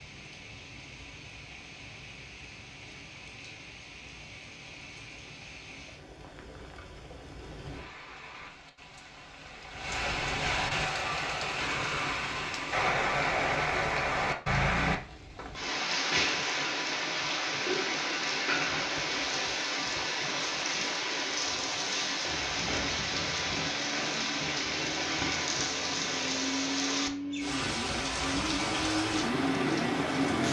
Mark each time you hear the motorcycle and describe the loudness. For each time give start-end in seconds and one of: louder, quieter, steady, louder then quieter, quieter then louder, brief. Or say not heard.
22.2-30.4 louder.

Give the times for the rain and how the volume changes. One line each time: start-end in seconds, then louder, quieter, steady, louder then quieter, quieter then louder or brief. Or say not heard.
0.0-30.4 louder.